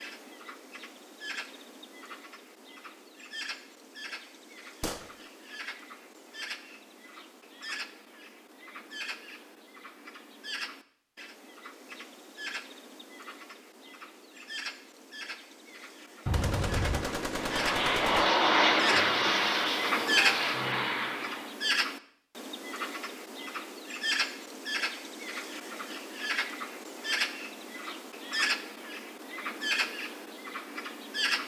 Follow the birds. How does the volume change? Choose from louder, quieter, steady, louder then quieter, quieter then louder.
louder.